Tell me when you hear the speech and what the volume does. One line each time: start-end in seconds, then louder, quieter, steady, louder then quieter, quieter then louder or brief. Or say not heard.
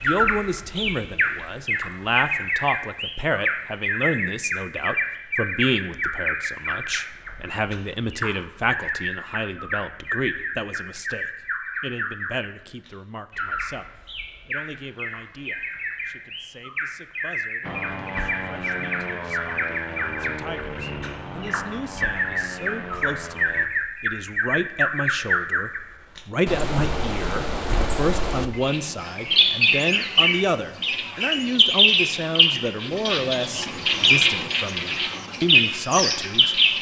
0.0-36.7 quieter then louder.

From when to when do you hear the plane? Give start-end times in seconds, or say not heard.
17.6-23.7.